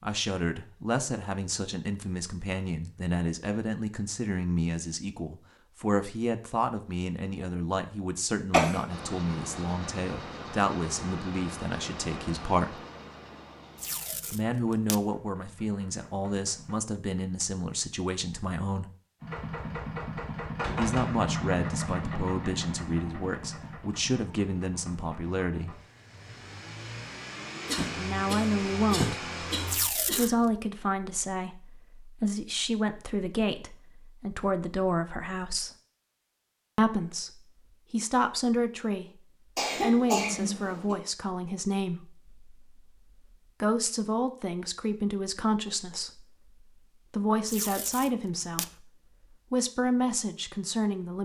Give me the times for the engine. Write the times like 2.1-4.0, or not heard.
8.8-16.8, 19.2-29.8.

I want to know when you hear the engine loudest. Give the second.
21 s.